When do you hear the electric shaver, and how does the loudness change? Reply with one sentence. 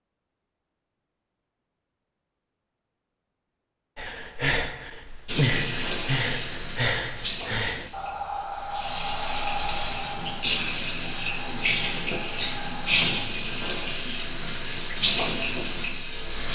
The electric shaver can't be heard in this clip.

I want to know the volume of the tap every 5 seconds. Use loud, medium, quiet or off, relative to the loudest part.
off, medium, loud, loud.